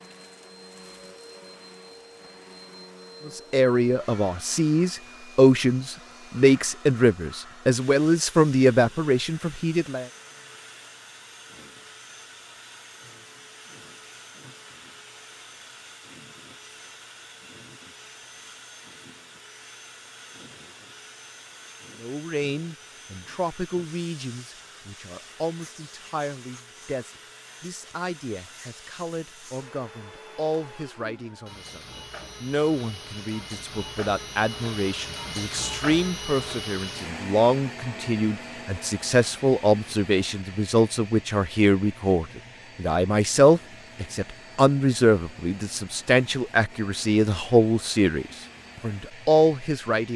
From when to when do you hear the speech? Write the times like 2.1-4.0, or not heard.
3.2-10.1, 22.0-50.1.